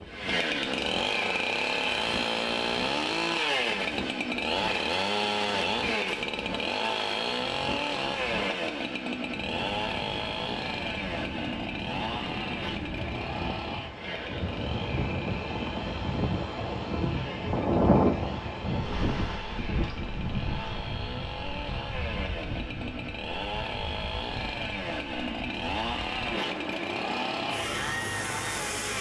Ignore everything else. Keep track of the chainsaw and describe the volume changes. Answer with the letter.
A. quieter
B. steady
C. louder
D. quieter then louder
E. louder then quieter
D.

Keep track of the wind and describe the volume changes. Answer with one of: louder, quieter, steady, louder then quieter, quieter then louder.
louder then quieter.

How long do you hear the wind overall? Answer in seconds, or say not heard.
29 s.